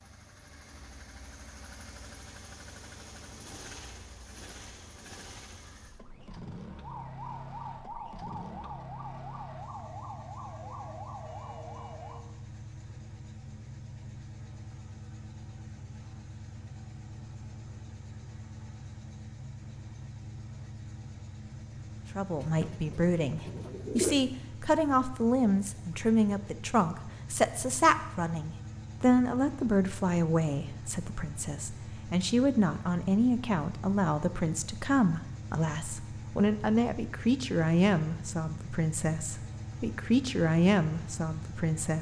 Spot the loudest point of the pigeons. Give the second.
24 s.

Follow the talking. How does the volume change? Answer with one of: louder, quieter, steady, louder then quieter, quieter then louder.
steady.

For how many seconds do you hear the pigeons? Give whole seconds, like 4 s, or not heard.
2 s.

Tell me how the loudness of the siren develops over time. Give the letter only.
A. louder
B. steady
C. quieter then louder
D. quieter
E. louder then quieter
B.